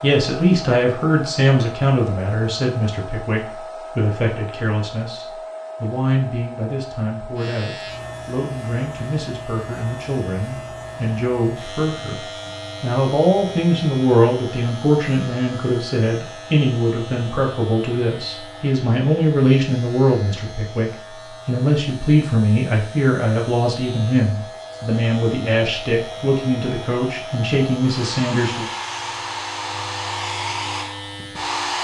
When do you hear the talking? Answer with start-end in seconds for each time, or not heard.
0.0-28.7.